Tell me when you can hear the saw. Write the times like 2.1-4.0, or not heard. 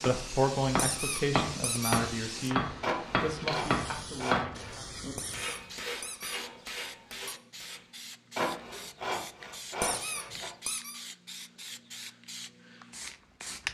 2.8-4.8, 8.3-10.5.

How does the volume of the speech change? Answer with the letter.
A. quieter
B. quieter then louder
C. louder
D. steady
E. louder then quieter
A.